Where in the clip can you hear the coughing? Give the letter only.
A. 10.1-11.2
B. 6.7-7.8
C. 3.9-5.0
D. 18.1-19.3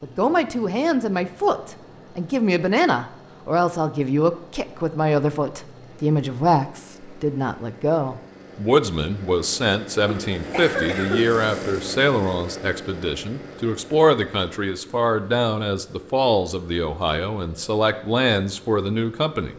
A.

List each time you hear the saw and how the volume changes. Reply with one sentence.
The saw can't be heard in this clip.